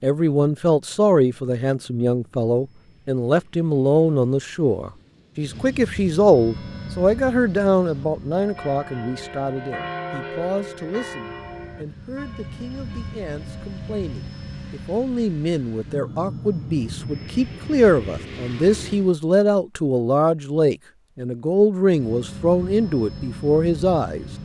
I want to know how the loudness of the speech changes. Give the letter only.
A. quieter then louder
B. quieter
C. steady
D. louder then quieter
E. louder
A.